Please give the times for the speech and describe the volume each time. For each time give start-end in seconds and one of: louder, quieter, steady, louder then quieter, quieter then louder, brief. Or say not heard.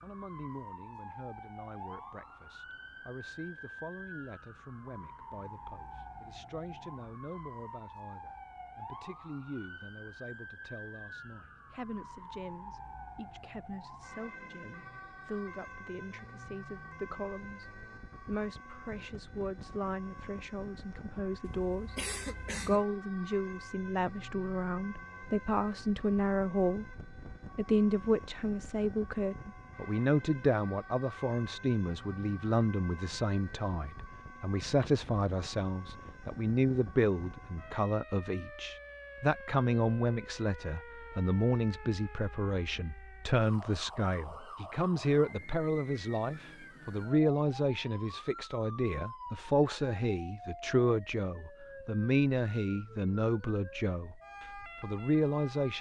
0.0-54.2 louder
54.8-55.7 brief.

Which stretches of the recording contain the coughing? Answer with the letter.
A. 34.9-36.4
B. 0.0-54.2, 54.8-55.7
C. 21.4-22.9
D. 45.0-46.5
C.